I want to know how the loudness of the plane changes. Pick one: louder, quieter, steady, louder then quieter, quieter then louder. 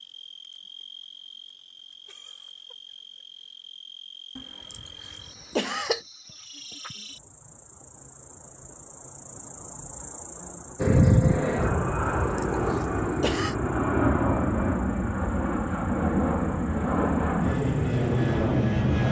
steady.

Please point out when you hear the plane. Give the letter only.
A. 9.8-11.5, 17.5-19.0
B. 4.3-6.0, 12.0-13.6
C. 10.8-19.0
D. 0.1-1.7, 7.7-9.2
C.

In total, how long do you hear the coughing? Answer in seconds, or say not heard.
3 s.